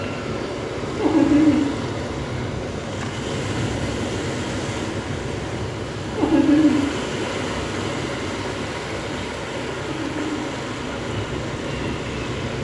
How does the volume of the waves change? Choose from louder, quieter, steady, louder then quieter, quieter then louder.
steady.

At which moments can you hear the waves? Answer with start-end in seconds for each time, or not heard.
0.0-12.5.